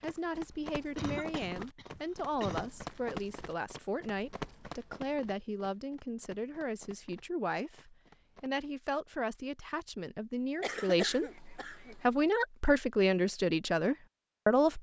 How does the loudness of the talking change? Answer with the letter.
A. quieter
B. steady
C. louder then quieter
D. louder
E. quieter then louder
D.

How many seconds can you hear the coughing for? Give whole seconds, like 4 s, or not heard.
3 s.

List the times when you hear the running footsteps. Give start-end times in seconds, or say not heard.
0.0-8.5.